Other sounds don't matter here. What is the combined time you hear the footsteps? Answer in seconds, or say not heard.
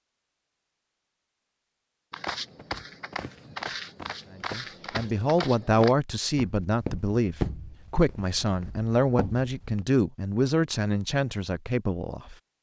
8 s.